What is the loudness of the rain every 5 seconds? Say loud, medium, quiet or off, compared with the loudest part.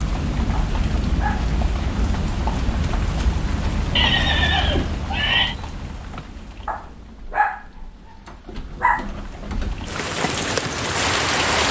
medium, quiet, loud.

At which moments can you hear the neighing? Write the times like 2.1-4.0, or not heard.
4.0-5.5.